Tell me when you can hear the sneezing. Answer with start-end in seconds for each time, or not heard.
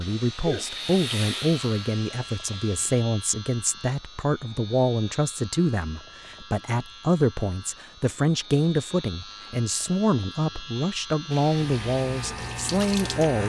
0.1-0.7.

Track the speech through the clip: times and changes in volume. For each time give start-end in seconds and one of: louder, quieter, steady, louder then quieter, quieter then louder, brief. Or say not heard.
0.0-13.4 steady.